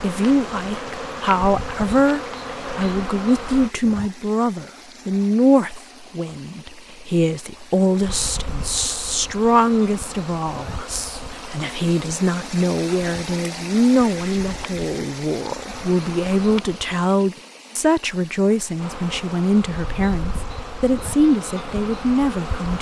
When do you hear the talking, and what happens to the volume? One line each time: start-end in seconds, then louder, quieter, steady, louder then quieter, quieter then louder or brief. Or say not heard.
0.0-22.7 steady.